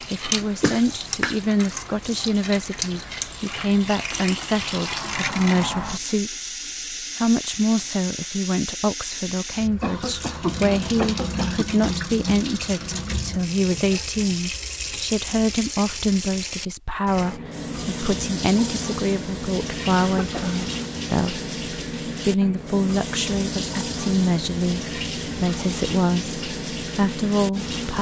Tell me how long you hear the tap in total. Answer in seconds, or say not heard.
28 s.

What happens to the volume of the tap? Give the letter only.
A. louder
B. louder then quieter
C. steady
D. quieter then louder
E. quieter
C.